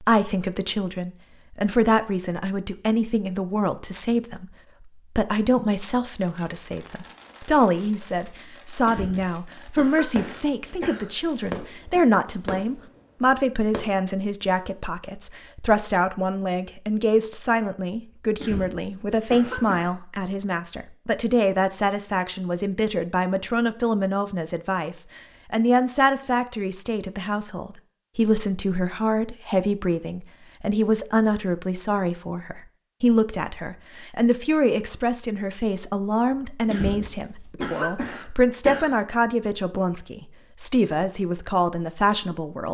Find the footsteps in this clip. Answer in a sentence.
You can't hear the footsteps here.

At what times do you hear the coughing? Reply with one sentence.
The coughing can be heard from 8.8 to 11.1 s, from 18.4 to 19.9 s and from 36.6 to 39.0 s.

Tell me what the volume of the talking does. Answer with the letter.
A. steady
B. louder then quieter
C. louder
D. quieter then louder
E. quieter
A.